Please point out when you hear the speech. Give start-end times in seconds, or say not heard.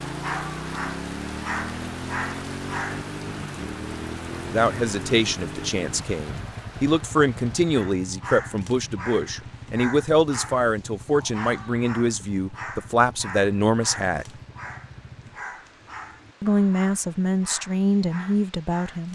4.5-14.2, 16.4-19.1.